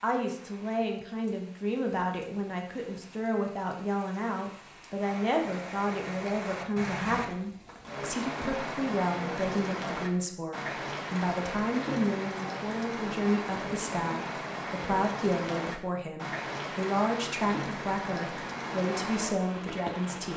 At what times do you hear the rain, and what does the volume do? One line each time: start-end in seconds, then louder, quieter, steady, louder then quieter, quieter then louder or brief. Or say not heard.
0.0-20.3 louder.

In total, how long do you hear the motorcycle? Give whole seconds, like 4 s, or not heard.
not heard.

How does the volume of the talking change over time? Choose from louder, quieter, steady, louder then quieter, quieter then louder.
steady.